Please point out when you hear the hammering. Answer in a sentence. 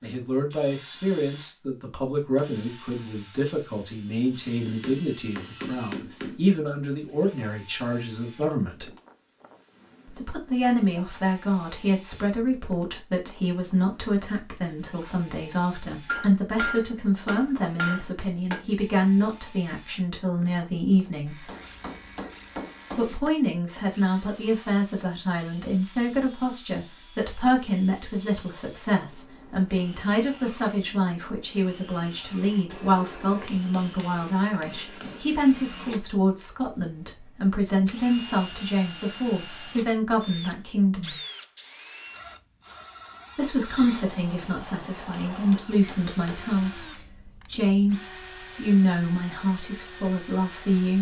You can hear the hammering from 4.7 to 6.4 s, from 16.1 to 18.6 s, from 21.4 to 23.3 s, from 32.7 to 35.2 s and from 45.3 to 46.9 s.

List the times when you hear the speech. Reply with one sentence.
You can hear the speech from 0.0 to 8.9 s, from 10.1 to 21.4 s, from 22.9 to 41.1 s and from 43.4 to 50.9 s.